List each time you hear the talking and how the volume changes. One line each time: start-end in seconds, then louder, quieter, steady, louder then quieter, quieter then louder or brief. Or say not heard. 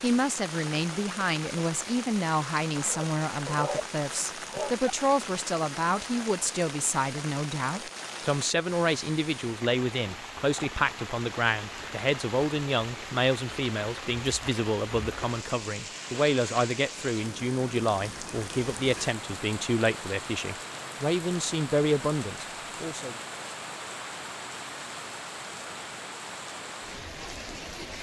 0.0-23.1 steady.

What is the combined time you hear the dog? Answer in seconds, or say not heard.
2 s.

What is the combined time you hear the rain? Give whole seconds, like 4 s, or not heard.
28 s.